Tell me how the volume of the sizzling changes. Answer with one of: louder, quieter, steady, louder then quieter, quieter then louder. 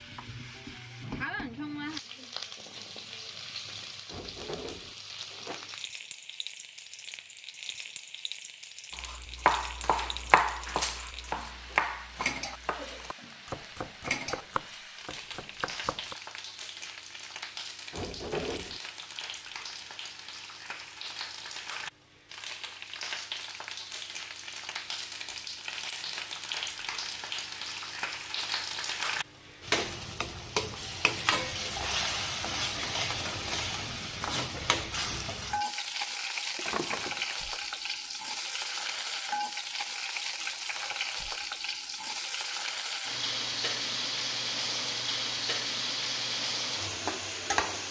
louder.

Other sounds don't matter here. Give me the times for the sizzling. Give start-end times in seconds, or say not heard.
0.0-47.8.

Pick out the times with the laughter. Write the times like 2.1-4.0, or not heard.
not heard.